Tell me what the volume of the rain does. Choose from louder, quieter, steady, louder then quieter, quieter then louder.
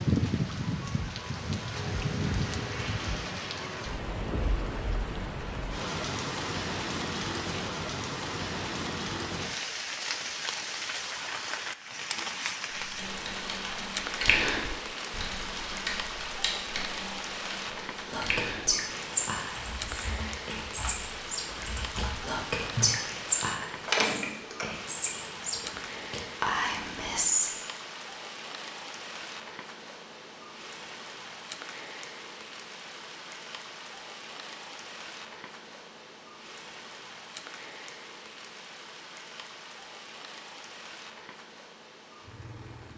quieter.